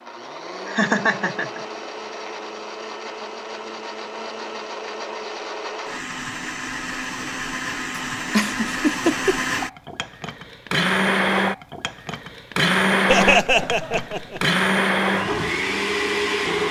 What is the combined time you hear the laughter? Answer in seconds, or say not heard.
3 s.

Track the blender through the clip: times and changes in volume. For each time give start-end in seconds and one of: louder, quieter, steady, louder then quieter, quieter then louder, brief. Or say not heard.
0.0-16.6 louder.